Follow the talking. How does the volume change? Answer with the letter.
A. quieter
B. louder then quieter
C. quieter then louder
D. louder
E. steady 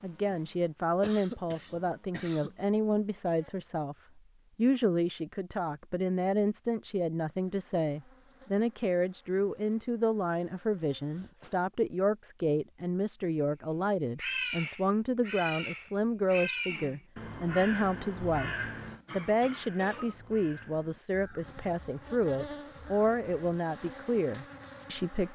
E.